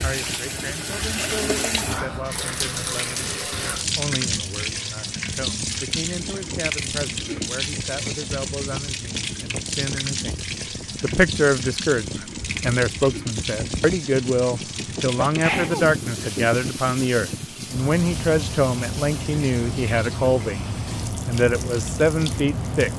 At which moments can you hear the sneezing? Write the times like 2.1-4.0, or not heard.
15.2-15.8.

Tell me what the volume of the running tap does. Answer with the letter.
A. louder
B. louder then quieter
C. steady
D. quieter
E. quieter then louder
D.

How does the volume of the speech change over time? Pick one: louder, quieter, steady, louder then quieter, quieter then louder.
louder.